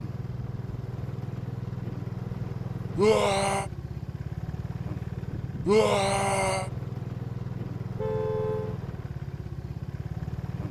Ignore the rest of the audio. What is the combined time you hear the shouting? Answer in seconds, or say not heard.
2 s.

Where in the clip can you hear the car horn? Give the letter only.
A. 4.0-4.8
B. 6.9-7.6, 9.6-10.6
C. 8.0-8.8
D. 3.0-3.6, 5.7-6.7
C.